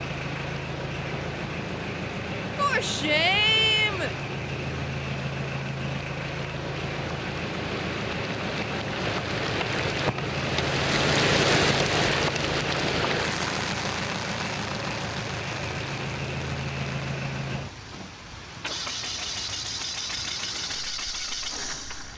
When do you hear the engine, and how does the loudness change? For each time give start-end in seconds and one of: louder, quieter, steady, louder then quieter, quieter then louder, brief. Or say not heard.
0.0-22.1 steady.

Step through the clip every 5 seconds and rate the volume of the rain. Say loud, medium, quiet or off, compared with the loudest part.
quiet, medium, loud, quiet, quiet.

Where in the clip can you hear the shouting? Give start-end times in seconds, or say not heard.
2.5-4.1.